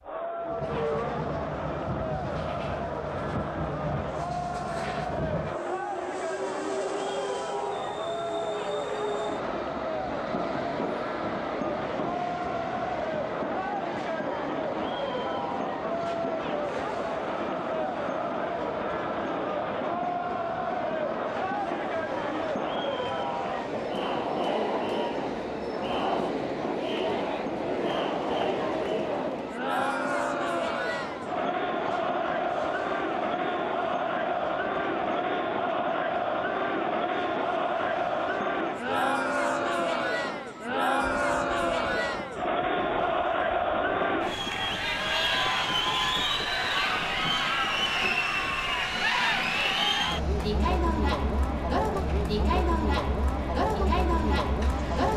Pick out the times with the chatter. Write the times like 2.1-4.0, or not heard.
0.0-55.1.